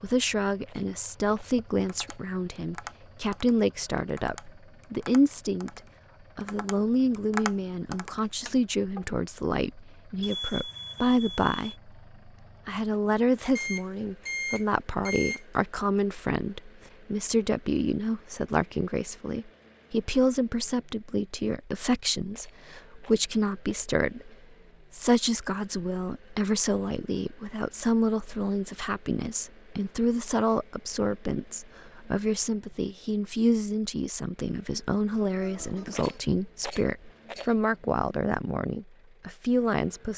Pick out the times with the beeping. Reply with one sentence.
You can hear the beeping from 10.2 to 11.8 s, from 13.6 to 15.4 s and from 35.4 to 36.2 s.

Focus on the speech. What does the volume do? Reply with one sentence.
The volume of the speech stays about the same.